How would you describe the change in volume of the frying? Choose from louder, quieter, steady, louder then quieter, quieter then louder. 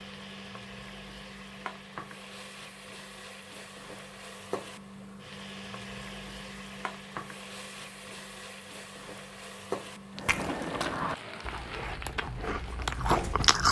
steady.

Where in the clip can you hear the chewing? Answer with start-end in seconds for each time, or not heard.
10.2-13.6.